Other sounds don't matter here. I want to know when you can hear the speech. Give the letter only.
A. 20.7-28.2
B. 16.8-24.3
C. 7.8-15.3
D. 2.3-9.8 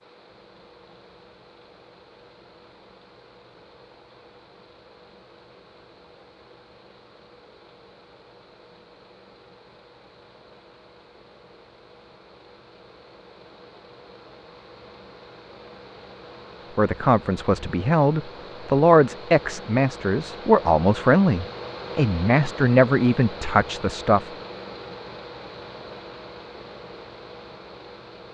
B.